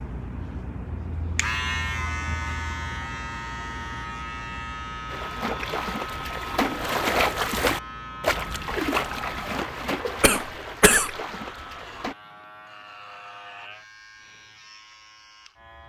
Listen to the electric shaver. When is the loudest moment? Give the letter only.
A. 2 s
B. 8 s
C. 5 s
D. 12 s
A.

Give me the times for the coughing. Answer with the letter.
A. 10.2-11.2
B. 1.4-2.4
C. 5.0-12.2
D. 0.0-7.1
A.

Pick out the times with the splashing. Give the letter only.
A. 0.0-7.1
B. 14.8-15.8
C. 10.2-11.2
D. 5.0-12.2
D.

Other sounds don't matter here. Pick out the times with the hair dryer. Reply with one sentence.
The hair dryer can't be heard in this clip.